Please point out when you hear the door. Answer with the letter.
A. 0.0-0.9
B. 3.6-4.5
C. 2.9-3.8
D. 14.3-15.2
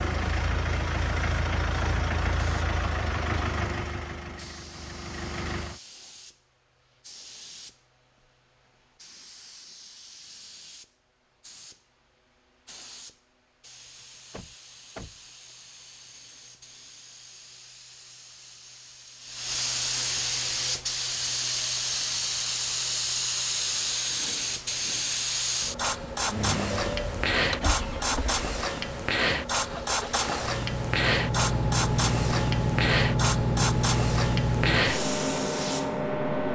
D.